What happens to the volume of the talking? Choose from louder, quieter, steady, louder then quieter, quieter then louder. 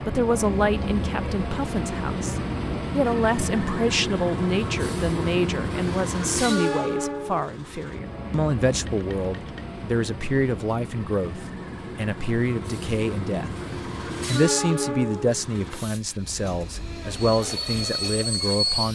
steady.